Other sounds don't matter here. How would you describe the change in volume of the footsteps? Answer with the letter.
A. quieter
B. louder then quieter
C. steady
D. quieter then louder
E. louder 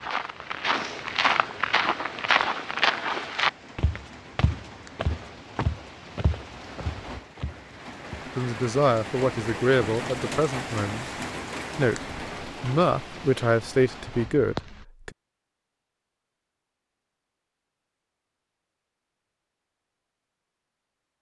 A.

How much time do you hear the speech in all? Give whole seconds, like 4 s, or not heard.
6 s.